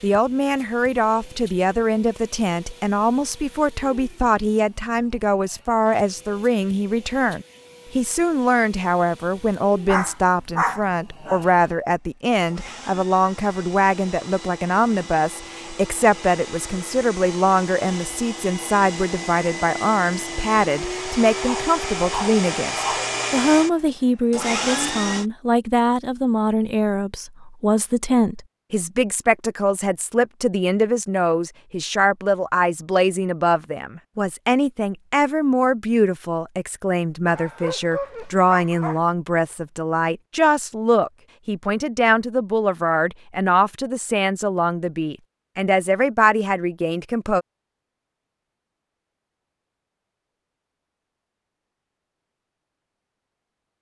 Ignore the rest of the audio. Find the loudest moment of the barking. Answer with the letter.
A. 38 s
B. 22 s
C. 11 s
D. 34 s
C.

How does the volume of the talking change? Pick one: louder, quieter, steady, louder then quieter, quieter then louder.
steady.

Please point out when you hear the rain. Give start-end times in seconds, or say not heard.
not heard.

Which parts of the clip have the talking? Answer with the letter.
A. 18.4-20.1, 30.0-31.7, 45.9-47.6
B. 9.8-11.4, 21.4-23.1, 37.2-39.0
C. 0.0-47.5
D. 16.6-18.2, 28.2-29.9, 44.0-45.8
C.